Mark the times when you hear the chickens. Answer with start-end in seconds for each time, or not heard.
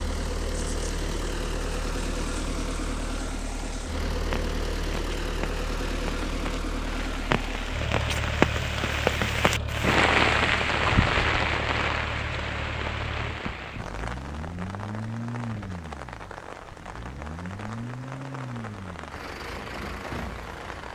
not heard.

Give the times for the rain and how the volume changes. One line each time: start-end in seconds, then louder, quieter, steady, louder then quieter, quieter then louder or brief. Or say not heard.
0.0-20.9 louder then quieter.